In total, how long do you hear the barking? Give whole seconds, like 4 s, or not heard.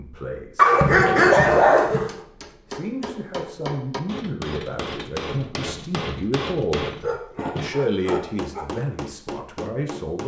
3 s.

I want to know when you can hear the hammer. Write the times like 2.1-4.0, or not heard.
1.9-10.2.